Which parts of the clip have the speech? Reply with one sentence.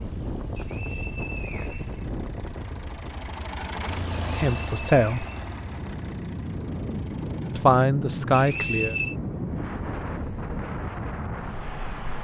You can hear the speech from 4.2 to 5.2 s and from 7.5 to 8.9 s.